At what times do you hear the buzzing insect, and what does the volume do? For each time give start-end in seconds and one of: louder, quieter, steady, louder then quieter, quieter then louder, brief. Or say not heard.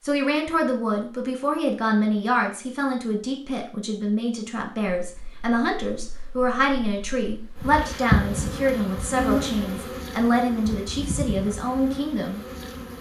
5.0-12.9 louder then quieter.